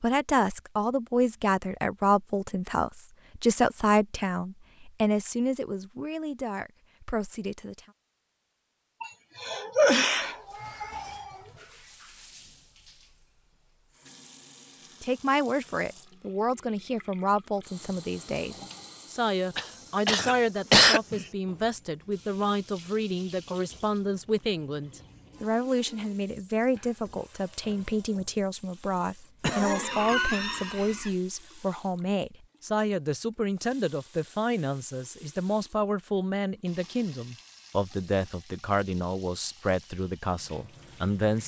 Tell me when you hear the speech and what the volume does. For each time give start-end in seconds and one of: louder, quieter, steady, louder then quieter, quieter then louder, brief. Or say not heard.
0.0-7.8 quieter
15.0-41.4 steady.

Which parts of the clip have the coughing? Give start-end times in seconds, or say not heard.
9.0-11.3, 19.6-21.2, 29.4-31.1.